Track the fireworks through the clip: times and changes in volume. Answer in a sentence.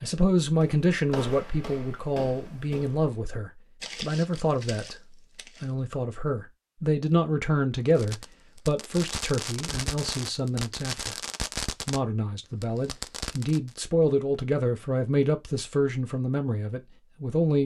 You can hear the fireworks from 8.0 to 12.0 s, getting louder; and briefly from 12.6 to 13.8 s.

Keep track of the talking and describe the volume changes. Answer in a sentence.
The loudness of the talking stays about the same.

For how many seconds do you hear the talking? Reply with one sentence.
The talking can be heard for 17 seconds in total.